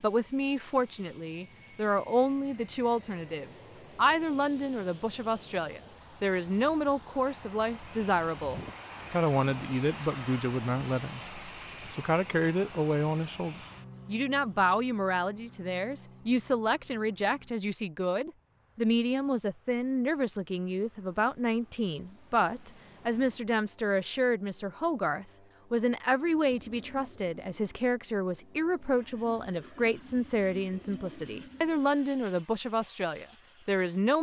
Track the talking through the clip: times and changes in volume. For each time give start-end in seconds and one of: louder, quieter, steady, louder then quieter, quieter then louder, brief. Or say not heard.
0.0-34.1 steady.